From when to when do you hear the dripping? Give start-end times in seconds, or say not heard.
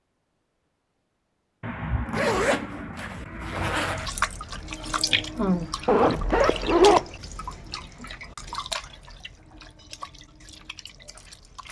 4.0-11.6.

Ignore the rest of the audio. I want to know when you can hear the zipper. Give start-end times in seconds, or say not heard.
1.6-4.1, 5.8-7.0.